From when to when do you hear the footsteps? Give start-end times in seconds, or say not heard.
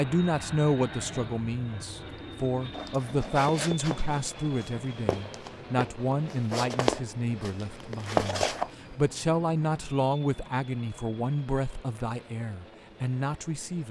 2.7-8.7.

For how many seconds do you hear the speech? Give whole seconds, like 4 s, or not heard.
14 s.